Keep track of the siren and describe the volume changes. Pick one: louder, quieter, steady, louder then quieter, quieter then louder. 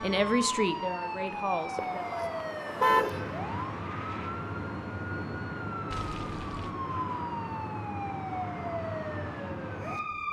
steady.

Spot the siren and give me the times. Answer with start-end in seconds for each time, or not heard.
0.0-10.2.